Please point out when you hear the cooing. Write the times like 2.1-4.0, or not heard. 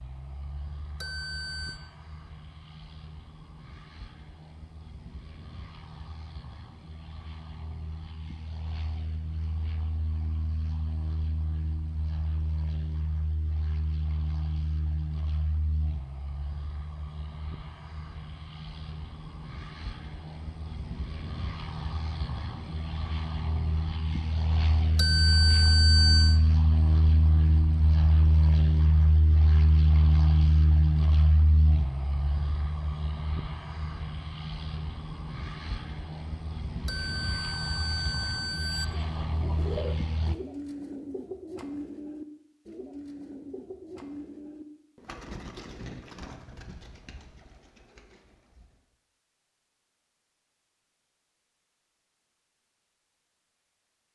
38.9-48.8.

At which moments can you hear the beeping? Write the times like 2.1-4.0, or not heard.
1.0-1.8, 24.9-26.4, 36.9-38.9.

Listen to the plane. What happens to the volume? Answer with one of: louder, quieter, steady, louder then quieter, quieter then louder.
louder then quieter.